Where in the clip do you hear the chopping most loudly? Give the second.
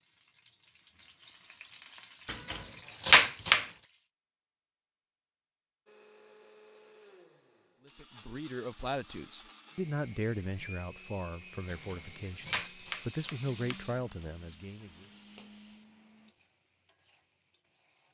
3 s.